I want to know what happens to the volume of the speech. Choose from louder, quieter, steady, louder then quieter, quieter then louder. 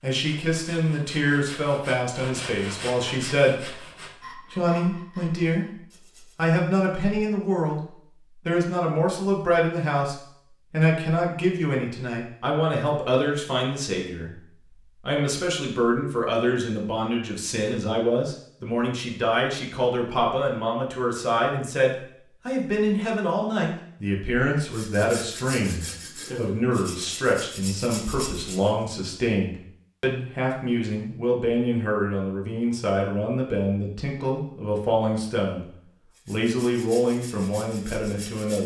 steady.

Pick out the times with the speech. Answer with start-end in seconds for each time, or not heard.
0.0-38.6.